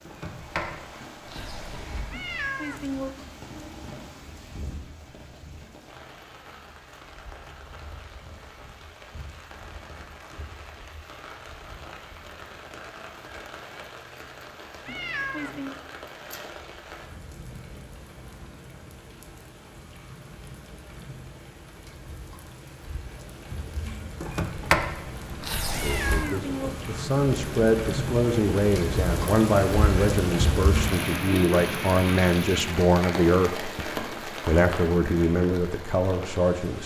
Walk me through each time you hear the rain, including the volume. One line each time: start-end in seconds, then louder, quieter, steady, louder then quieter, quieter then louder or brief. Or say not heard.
0.0-36.8 louder.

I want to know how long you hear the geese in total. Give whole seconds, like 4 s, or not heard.
not heard.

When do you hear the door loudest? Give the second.
25 s.